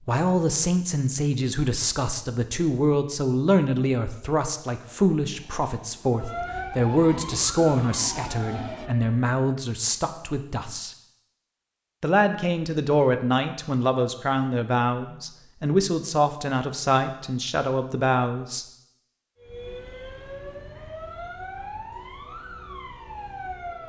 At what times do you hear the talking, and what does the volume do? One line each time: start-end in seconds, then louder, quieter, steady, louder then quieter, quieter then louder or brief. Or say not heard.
0.1-10.9 steady
12.0-18.6 steady.